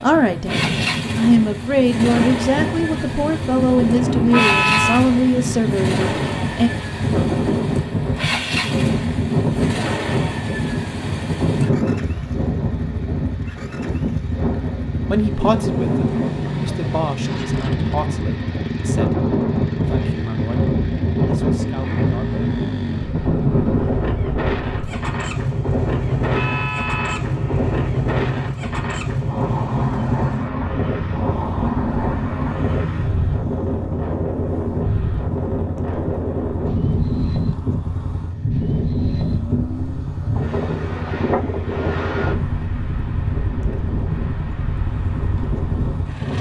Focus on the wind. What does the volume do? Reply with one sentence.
The loudness of the wind stays about the same.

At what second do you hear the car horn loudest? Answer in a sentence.
The loudest moment of the car horn is at 5 seconds.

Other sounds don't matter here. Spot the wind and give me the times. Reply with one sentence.
You can hear the wind from 0.0 to 46.3 s.